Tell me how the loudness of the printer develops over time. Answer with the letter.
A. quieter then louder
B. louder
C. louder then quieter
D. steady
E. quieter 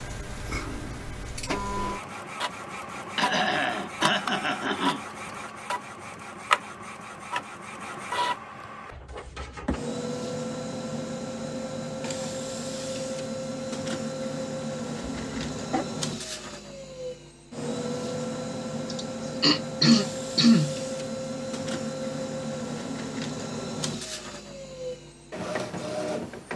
D.